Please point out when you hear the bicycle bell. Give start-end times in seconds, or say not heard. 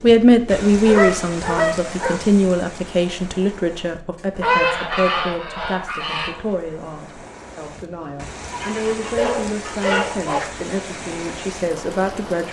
not heard.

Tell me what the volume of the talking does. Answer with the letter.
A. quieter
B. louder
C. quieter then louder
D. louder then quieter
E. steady
A.